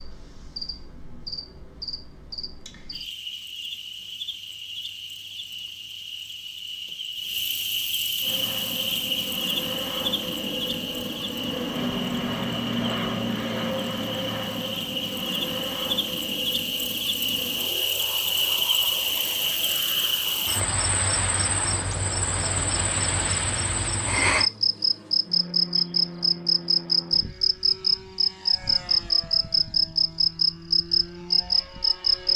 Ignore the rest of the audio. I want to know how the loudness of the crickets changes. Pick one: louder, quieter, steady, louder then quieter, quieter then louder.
louder.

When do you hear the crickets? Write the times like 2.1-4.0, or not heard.
0.0-32.3.